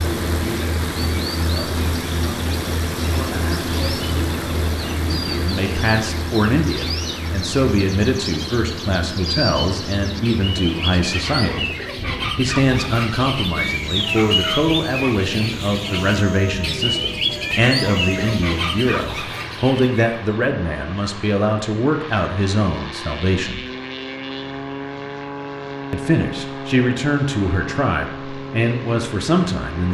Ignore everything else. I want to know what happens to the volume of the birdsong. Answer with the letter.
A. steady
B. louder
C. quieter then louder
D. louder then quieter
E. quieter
B.